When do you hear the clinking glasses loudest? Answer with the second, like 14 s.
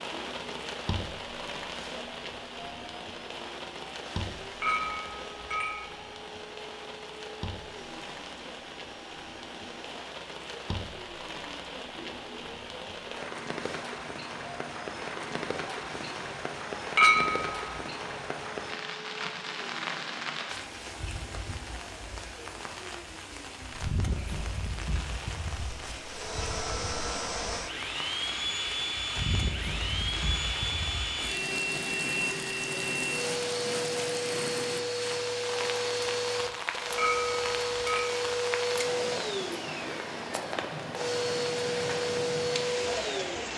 17 s.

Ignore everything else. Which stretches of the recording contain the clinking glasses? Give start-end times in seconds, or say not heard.
4.6-5.8, 16.9-17.6, 37.0-38.1.